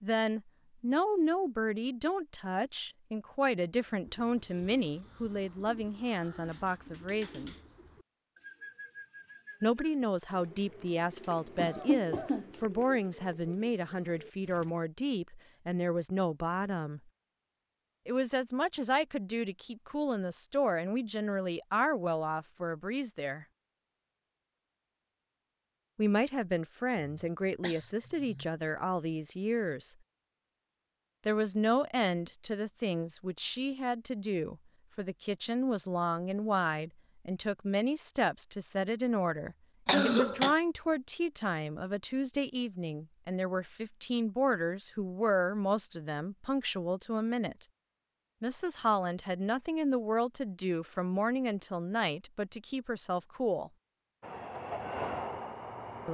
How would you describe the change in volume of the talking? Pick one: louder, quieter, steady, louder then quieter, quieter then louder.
steady.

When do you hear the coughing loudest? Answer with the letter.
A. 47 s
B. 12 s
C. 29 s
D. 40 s
D.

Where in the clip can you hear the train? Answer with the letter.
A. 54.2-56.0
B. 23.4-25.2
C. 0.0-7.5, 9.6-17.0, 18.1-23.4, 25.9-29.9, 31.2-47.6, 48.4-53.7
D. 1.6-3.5
A.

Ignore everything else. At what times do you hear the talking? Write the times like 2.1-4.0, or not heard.
0.0-7.5, 9.6-17.0, 18.1-23.4, 25.9-29.9, 31.2-47.6, 48.4-53.7.